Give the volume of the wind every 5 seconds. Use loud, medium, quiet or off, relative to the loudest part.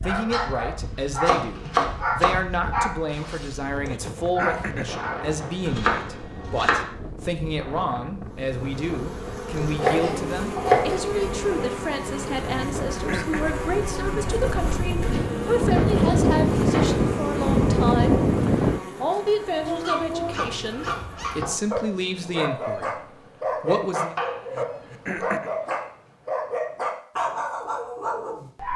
quiet, quiet, quiet, loud, off, off.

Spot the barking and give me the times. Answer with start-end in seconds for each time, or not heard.
0.0-5.2, 19.4-28.7.